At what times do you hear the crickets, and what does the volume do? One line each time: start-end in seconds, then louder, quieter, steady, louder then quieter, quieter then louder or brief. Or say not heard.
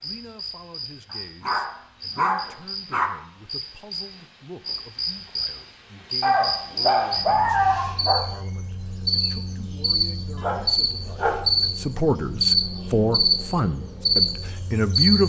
0.0-15.2 louder.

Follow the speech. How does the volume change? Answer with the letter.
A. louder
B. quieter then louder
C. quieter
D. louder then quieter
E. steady
A.